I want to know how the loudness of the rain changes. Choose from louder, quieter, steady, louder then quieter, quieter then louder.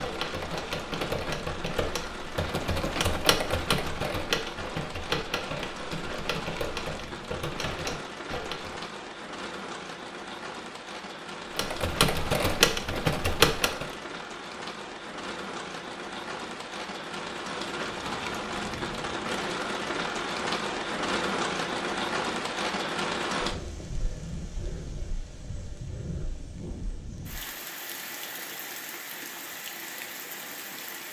louder then quieter.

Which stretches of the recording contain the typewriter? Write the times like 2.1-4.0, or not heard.
0.0-8.8, 11.6-13.9.